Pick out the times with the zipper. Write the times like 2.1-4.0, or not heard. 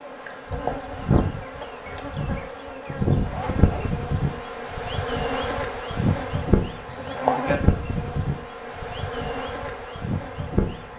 3.1-4.0, 6.8-7.5.